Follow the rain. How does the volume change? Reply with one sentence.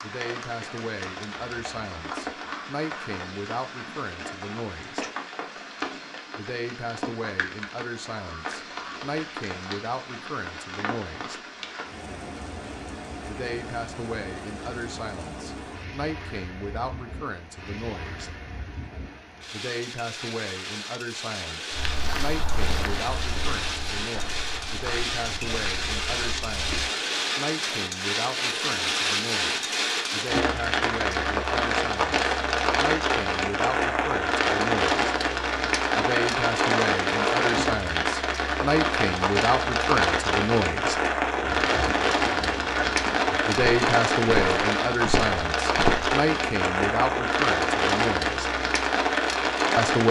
The loudness of the rain goes up.